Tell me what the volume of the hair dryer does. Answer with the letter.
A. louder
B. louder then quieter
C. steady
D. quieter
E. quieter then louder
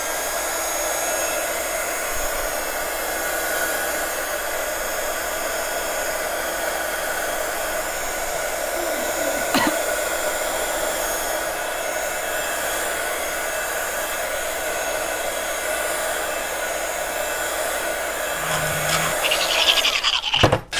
C.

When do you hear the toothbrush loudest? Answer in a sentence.
The loudest moment of the toothbrush is at 20 seconds.